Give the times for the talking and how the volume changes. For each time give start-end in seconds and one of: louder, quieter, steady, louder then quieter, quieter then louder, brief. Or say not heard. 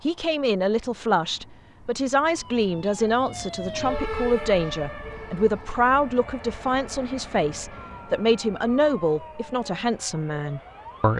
0.0-11.1 steady.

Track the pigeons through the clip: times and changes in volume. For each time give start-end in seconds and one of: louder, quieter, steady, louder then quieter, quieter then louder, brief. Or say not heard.
not heard.